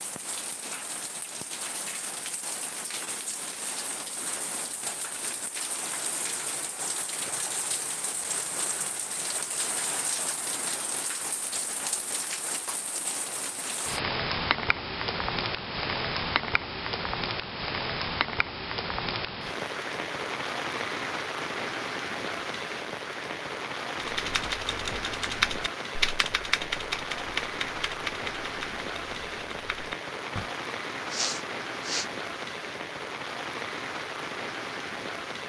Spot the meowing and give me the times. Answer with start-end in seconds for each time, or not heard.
not heard.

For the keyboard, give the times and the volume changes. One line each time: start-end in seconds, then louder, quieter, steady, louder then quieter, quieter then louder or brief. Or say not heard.
23.9-30.6 quieter.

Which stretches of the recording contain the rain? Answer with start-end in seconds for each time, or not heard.
0.0-35.4.